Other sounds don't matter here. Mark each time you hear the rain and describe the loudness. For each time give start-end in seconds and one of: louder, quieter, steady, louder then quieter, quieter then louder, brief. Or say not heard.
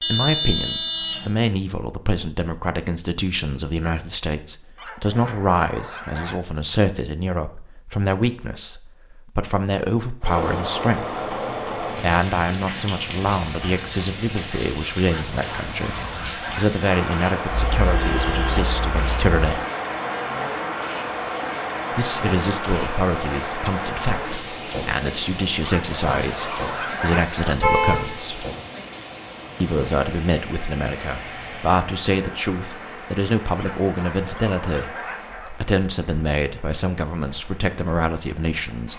10.2-38.9 quieter.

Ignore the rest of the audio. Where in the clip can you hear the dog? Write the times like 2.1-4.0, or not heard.
4.8-6.4, 15.1-16.8, 25.6-27.6, 33.5-35.5.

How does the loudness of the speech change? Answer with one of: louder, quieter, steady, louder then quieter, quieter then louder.
steady.